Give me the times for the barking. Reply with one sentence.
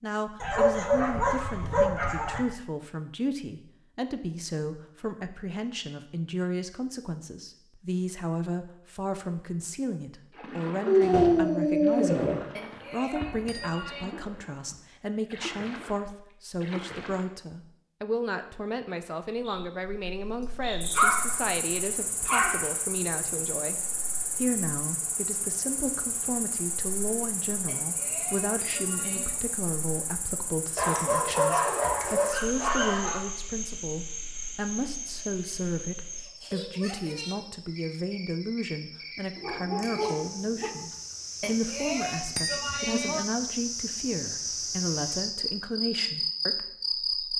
The barking can be heard from 0.4 to 2.4 s, from 10.8 to 12.4 s, from 20.9 to 22.7 s, from 30.8 to 33.2 s and from 39.4 to 40.7 s.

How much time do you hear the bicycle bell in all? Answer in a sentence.
You can hear the bicycle bell for 5 seconds altogether.